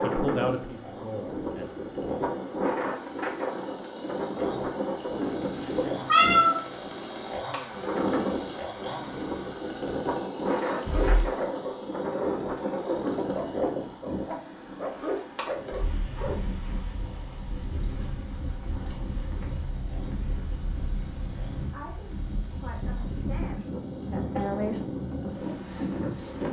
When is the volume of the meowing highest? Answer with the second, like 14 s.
6 s.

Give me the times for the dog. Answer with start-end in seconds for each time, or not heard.
10.8-16.4.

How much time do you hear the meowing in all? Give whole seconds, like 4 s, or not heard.
2 s.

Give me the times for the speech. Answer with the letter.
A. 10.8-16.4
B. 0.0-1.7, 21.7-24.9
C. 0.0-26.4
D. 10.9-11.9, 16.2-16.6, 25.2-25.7
B.